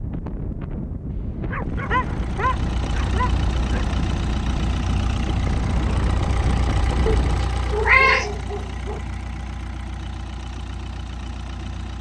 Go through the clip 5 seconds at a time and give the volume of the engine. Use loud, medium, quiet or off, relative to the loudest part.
loud, loud, medium.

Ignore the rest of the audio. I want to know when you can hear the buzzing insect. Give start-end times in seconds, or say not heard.
not heard.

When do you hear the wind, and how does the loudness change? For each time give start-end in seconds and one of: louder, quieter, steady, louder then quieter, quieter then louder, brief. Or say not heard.
0.0-7.5 steady.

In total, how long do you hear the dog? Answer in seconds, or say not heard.
5 s.